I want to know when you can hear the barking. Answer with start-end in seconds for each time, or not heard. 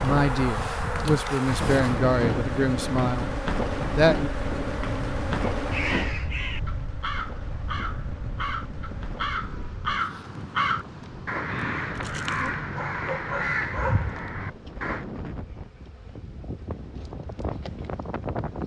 11.9-14.2.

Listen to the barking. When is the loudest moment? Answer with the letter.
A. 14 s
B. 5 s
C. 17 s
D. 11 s
A.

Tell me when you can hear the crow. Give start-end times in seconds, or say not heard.
5.5-15.1.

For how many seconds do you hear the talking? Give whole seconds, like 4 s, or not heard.
4 s.